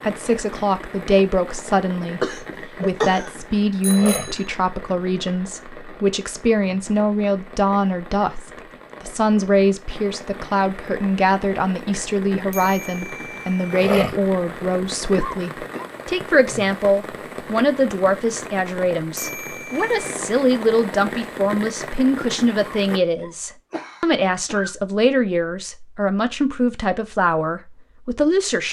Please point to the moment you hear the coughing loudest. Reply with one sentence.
The volume of the coughing peaks at 3 seconds.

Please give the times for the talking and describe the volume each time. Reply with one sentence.
The talking can be heard from 0.0 to 28.6 s, at a steady volume.